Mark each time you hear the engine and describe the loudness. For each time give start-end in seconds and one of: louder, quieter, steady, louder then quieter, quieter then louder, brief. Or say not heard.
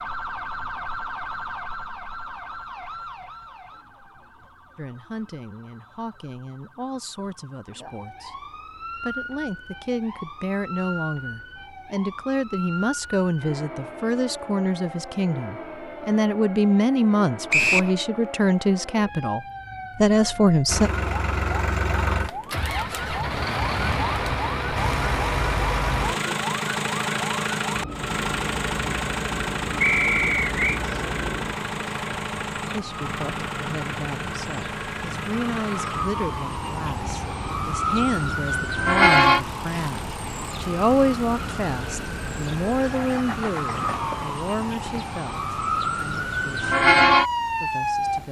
20.6-44.4 quieter.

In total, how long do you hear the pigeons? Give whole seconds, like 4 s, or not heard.
not heard.